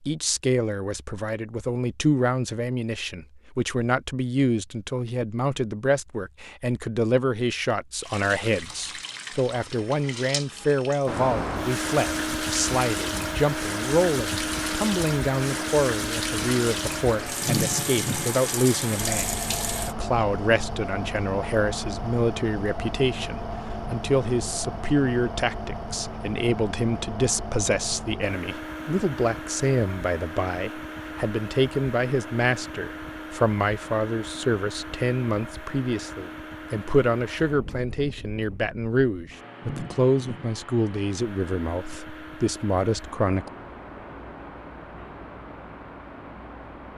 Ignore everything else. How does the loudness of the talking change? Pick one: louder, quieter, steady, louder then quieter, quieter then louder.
steady.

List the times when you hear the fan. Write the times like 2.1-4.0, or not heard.
11.1-46.9.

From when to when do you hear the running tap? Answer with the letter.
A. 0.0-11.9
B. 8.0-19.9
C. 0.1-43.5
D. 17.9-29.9
B.